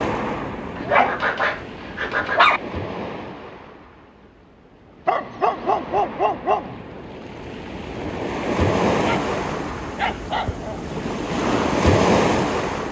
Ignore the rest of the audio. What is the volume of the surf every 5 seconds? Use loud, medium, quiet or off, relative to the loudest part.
medium, medium, loud.